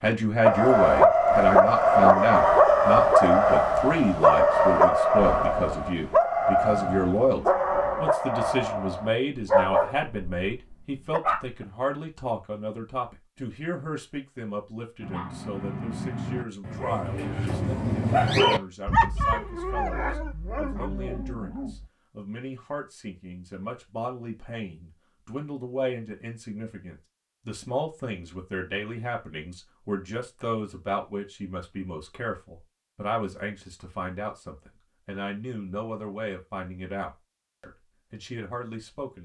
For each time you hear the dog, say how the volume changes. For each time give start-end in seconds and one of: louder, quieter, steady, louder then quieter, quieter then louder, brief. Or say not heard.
0.4-11.6 quieter
15.0-21.9 louder then quieter.